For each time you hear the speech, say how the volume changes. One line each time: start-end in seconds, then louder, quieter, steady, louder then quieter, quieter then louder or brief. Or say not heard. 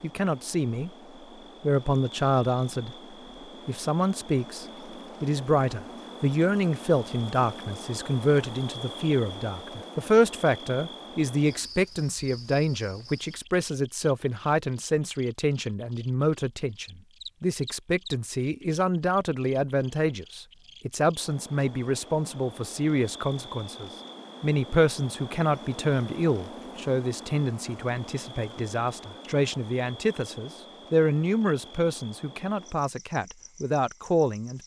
0.0-0.9 brief
1.6-3.0 brief
3.6-34.6 steady.